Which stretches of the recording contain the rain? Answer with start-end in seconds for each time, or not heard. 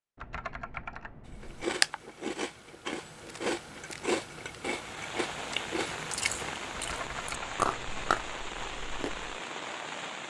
4.7-10.2.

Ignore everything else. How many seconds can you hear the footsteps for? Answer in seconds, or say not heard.
not heard.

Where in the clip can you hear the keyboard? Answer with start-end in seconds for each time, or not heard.
0.1-1.6, 6.7-8.1.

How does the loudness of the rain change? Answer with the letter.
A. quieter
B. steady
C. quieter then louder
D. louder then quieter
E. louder
B.